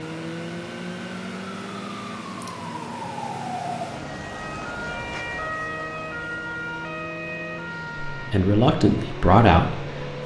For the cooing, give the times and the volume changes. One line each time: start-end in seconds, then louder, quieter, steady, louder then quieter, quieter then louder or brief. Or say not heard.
not heard.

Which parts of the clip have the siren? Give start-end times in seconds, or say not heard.
0.0-10.2.